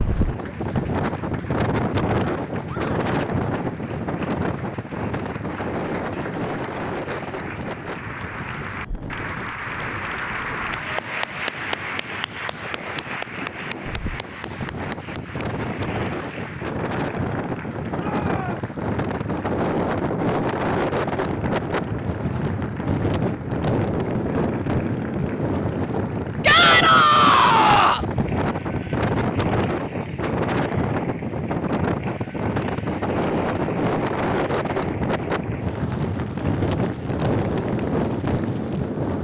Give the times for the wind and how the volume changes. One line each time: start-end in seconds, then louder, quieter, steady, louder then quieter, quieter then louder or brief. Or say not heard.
0.0-39.1 quieter then louder.